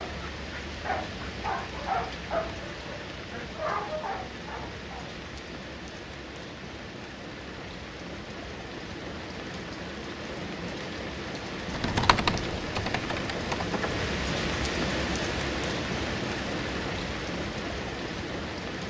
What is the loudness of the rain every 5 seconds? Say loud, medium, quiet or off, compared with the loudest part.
medium, medium, loud, loud.